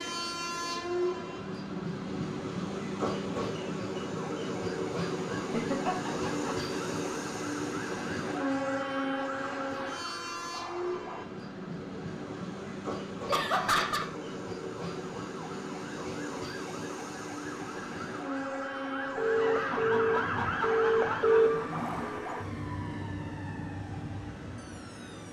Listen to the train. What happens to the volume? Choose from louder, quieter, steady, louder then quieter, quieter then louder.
quieter.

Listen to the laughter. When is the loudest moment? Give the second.
14 s.